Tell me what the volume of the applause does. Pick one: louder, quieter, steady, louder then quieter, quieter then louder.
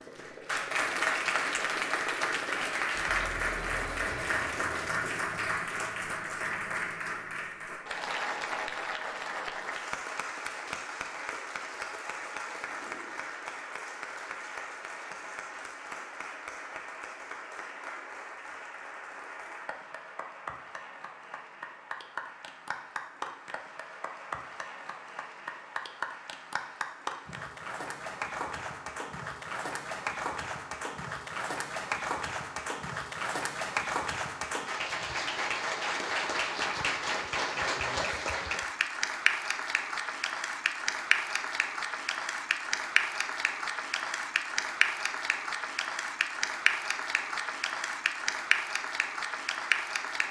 quieter then louder.